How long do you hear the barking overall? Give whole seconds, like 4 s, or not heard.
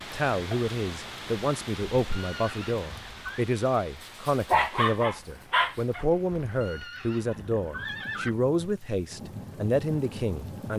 2 s.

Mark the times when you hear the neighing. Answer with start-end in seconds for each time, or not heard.
1.9-3.5, 6.5-8.3.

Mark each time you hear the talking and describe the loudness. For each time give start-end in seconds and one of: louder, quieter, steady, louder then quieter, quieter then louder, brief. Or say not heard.
0.1-10.7 steady.